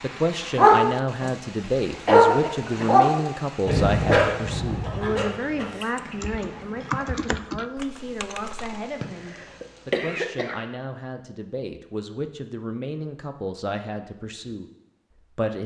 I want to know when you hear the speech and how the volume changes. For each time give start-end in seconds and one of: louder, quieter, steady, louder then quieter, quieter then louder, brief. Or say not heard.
0.0-15.6 quieter.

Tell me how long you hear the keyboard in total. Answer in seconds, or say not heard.
3 s.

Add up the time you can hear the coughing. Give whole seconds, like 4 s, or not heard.
2 s.